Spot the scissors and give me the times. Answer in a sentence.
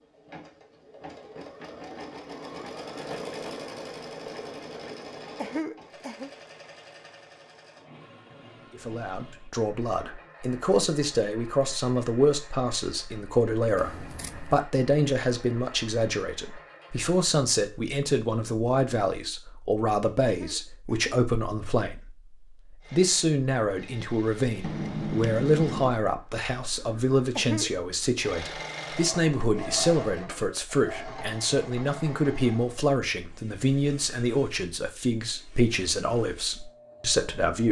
You can hear the scissors from 13.8 to 14.7 s and from 24.6 to 25.9 s.